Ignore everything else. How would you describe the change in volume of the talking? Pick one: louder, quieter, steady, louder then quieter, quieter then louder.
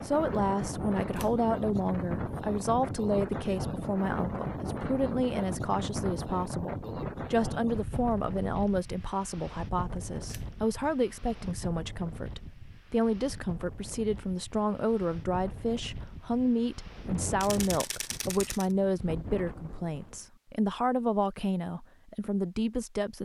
steady.